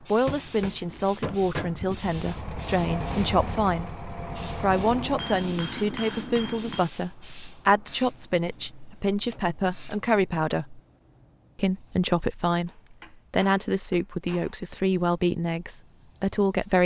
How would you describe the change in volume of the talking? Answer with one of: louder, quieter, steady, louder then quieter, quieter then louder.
steady.